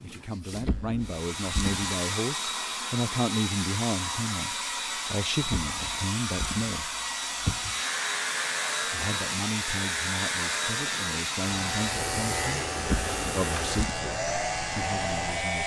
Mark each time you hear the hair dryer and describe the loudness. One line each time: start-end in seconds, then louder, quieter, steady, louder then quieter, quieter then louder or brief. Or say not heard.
0.0-15.6 steady.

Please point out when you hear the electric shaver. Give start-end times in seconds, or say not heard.
7.6-15.6.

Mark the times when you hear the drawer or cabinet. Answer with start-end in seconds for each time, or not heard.
0.5-1.9, 5.3-7.8, 12.8-13.9.